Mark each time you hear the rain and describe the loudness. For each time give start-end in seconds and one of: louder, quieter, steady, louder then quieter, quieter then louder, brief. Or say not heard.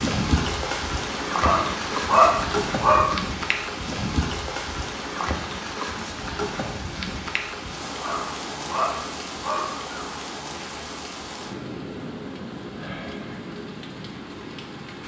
0.0-15.0 quieter.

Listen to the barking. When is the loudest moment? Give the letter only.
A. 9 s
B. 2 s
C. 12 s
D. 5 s
B.